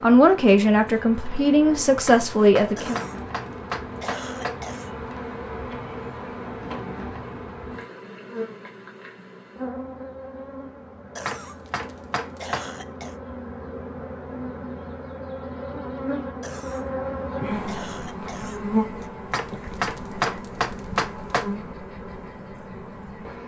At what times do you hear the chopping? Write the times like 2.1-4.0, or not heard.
2.0-4.6, 11.2-12.7, 19.3-21.5.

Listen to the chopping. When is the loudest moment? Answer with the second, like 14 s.
20 s.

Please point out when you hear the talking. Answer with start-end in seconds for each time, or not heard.
0.0-3.0.